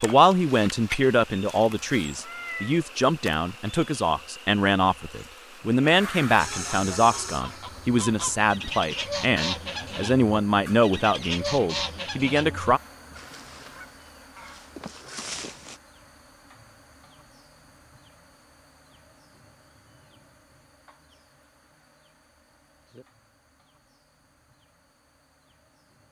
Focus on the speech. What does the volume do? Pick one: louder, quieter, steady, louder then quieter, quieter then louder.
steady.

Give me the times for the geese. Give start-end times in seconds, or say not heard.
6.3-15.8.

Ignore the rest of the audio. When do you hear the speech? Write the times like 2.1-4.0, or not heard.
0.0-12.8.